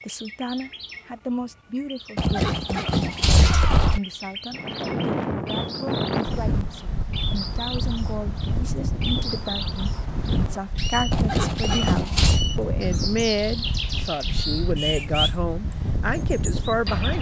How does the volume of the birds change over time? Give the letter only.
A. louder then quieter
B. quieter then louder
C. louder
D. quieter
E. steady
C.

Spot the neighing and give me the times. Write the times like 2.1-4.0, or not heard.
2.1-4.0, 11.1-12.4.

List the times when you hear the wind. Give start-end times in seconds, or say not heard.
4.5-17.1.